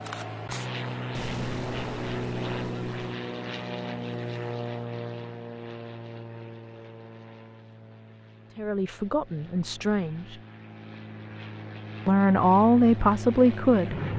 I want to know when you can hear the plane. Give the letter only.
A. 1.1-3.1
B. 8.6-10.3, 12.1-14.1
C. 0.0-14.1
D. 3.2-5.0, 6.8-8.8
C.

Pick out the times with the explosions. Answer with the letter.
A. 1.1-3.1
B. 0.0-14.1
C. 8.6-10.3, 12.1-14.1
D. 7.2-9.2
A.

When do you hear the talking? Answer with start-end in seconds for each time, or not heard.
8.6-10.3, 12.1-14.1.